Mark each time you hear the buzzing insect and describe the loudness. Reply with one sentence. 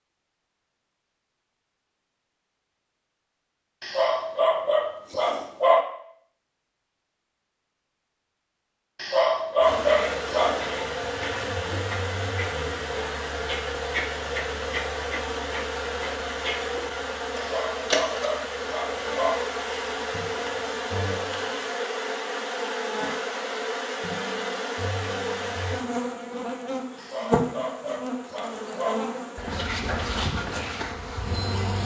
You can hear the buzzing insect from 9.6 to 31.8 s, at a steady volume.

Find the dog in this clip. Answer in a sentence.
You can hear the dog from 3.8 to 5.8 s, from 8.9 to 10.7 s, from 17.4 to 19.4 s and from 26.9 to 29.0 s.